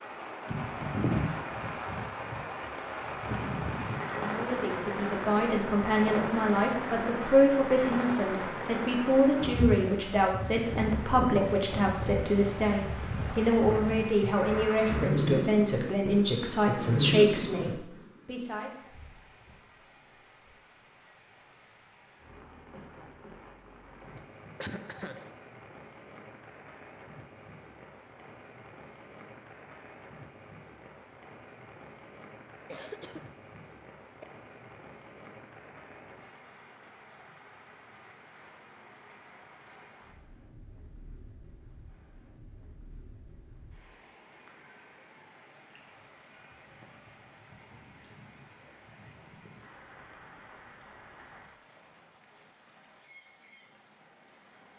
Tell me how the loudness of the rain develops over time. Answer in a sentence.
The loudness of the rain goes down.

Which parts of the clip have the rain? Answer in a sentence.
The rain can be heard from 0.0 to 54.7 s.